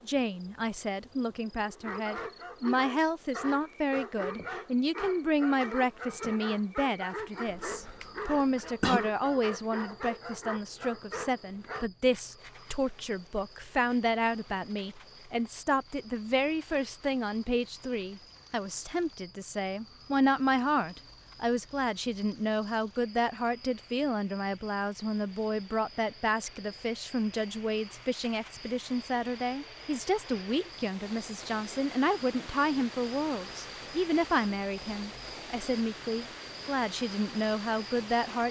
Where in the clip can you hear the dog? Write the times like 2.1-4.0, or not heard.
1.6-11.9.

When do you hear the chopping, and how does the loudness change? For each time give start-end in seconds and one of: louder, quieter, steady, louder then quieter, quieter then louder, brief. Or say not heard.
not heard.